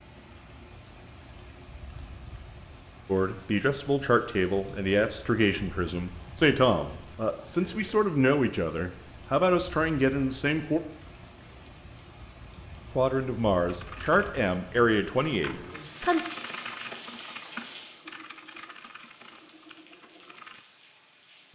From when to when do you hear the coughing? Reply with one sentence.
You can't hear the coughing here.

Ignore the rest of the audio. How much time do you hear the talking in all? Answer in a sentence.
The talking can be heard for 11 seconds in total.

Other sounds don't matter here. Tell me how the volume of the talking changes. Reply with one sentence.
The loudness of the talking stays about the same.